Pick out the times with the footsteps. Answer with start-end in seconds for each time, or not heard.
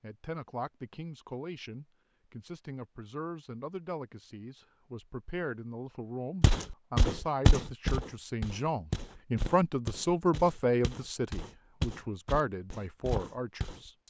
6.4-13.9.